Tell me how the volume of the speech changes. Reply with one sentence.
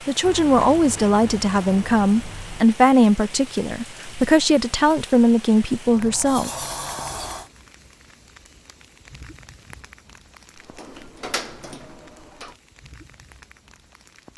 The volume of the speech stays about the same.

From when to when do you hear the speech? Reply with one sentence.
You can hear the speech from 0.1 to 6.5 s.